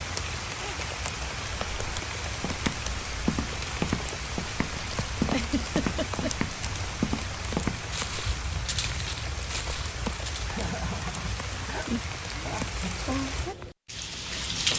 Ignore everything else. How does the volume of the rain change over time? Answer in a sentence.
The loudness of the rain stays about the same.